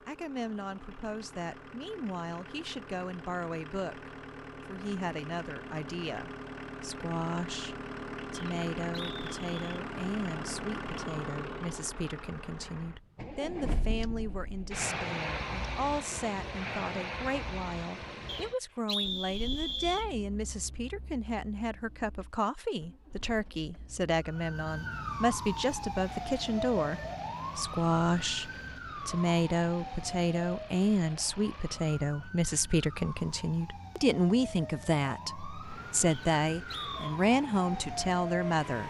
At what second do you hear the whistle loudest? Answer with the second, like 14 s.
19 s.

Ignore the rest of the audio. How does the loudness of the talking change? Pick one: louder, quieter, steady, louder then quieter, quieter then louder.
louder.